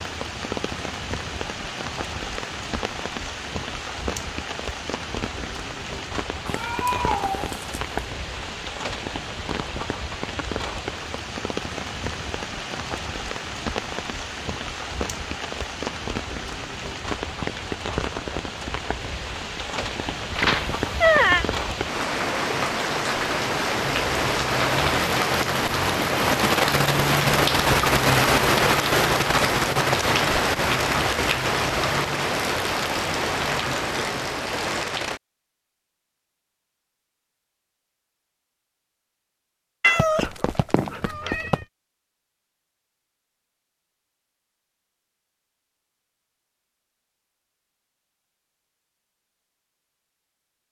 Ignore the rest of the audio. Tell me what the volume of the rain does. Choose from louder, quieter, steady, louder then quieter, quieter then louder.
louder.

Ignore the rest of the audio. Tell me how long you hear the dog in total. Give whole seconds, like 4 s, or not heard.
not heard.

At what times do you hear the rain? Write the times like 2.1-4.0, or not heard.
0.0-35.2.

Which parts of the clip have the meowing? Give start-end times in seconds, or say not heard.
6.5-8.0, 20.4-21.4, 39.8-41.6.